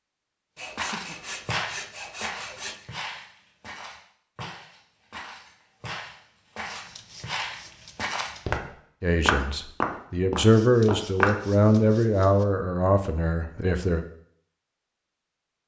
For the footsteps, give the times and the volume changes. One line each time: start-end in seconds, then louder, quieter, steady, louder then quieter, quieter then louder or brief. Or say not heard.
0.8-11.8 quieter then louder.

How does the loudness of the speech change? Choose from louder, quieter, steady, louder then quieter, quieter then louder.
louder then quieter.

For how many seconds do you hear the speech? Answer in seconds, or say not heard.
5 s.